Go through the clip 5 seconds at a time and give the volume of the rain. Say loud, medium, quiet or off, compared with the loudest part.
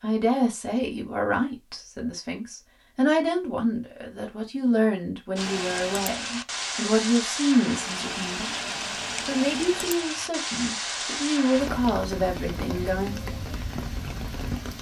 off, loud, loud.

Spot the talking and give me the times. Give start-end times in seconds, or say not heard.
0.0-8.6, 9.2-13.2.